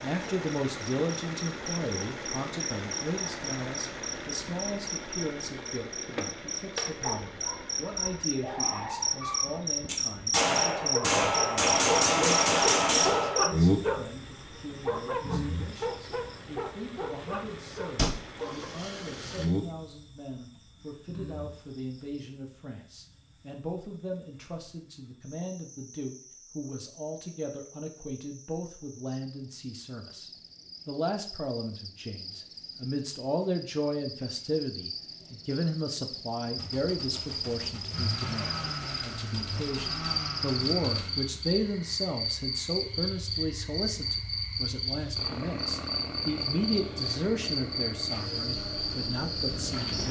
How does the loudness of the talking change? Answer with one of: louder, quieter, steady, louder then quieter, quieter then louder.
quieter then louder.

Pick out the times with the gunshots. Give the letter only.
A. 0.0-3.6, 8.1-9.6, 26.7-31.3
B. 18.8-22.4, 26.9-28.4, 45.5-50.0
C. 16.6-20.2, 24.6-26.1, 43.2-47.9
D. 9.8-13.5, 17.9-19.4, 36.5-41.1
D.